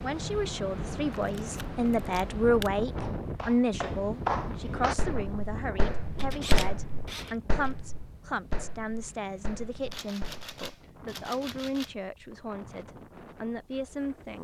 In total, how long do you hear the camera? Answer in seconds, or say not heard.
5 s.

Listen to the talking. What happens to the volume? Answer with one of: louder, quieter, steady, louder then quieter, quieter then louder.
quieter.